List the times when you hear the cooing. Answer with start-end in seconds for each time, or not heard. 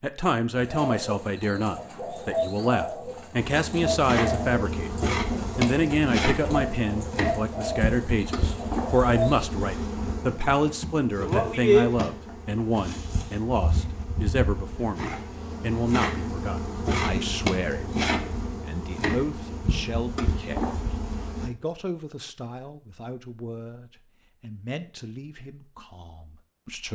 0.5-9.5.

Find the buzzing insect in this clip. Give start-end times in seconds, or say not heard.
3.4-21.5.